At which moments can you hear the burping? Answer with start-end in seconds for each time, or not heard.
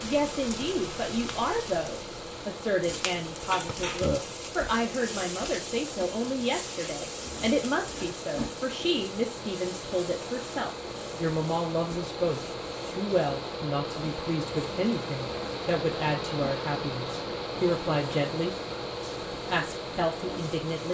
3.6-4.2.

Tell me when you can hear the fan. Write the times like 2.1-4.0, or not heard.
0.0-20.8.